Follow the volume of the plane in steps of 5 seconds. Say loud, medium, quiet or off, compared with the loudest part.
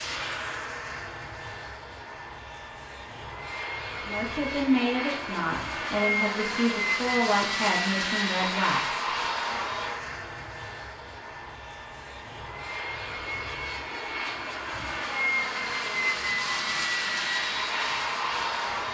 medium, loud, medium, loud.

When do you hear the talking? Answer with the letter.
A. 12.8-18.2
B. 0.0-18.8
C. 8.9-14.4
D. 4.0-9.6
D.